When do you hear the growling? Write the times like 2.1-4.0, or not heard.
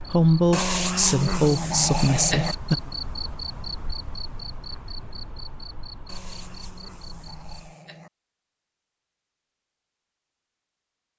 0.5-2.5, 6.0-8.1.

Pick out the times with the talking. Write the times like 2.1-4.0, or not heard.
0.0-2.8.